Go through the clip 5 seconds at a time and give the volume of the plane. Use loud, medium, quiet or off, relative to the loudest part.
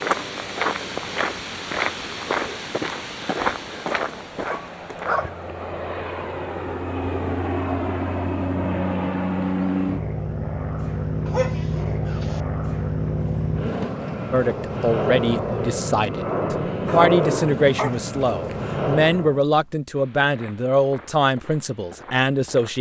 quiet, loud, loud, loud, off.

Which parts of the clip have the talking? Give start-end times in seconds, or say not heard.
14.3-22.7.